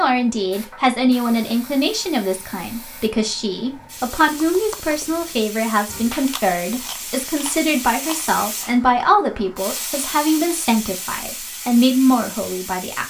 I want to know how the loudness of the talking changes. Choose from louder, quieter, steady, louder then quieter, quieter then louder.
steady.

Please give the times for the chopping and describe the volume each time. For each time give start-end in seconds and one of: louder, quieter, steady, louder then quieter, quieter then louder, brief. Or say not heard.
not heard.